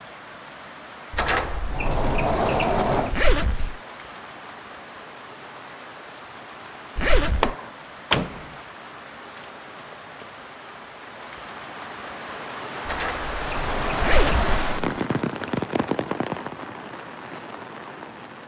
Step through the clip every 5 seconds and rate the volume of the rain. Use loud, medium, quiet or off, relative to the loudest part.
medium, medium, loud, loud.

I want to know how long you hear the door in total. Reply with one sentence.
You can hear the door for 5 seconds altogether.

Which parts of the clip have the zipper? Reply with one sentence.
The zipper can be heard from 3.1 to 3.8 s, from 7.0 to 7.5 s and from 14.0 to 14.8 s.